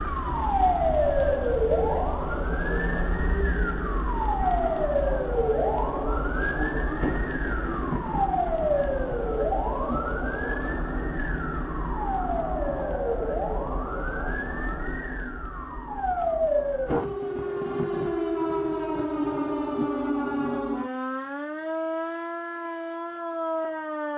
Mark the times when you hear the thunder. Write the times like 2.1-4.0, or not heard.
7.0-10.0, 16.9-19.9.